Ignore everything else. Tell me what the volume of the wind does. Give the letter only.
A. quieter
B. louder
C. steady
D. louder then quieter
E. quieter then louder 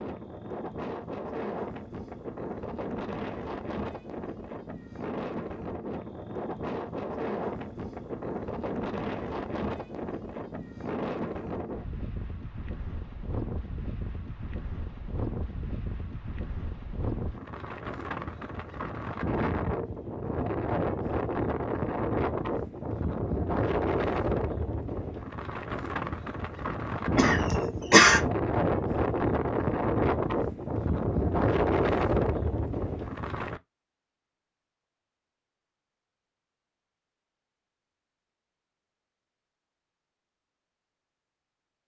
B.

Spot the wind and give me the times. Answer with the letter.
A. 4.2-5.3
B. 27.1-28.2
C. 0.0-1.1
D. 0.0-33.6
D.